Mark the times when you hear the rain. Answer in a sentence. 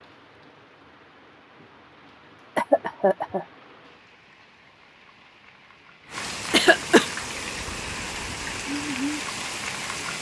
The rain can be heard from 0.0 to 10.1 s.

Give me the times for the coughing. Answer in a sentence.
You can hear the coughing from 2.5 to 3.5 s and from 6.5 to 7.1 s.